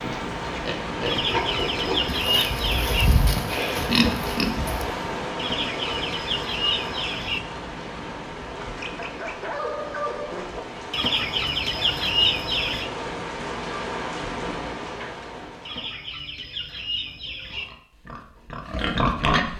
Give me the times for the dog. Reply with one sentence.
The dog can be heard from 8.6 to 10.6 s.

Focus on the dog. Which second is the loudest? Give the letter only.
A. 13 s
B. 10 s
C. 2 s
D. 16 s
B.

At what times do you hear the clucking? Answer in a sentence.
The clucking can be heard from 1.1 to 3.0 s, from 5.3 to 7.4 s, from 10.9 to 12.9 s and from 15.7 to 17.6 s.